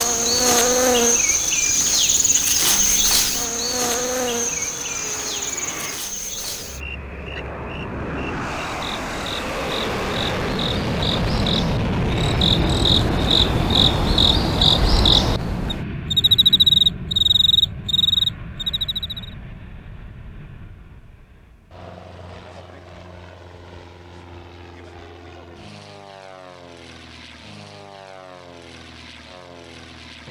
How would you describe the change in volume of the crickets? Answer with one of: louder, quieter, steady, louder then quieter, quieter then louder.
quieter then louder.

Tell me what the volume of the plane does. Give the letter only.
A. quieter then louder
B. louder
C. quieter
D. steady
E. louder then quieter
E.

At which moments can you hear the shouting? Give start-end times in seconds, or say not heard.
not heard.